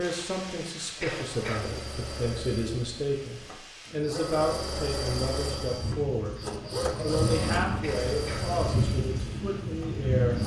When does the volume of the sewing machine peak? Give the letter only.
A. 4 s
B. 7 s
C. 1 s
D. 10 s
B.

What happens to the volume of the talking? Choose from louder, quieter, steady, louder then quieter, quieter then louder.
steady.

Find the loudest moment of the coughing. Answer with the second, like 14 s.
1 s.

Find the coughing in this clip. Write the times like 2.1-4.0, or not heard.
1.0-1.8, 7.8-8.6.